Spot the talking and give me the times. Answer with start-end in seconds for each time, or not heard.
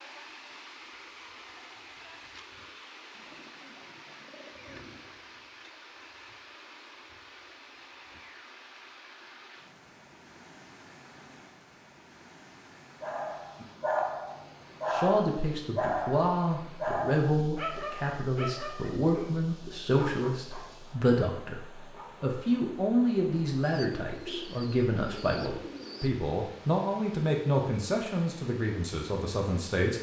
14.9-21.6, 22.2-29.9.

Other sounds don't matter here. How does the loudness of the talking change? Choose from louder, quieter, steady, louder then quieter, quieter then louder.
steady.